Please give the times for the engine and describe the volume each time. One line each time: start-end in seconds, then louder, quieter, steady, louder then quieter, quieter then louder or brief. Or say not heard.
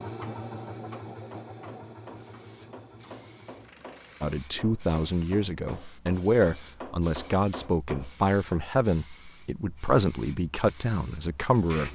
0.0-4.2 quieter.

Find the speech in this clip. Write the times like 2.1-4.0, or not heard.
4.2-11.8.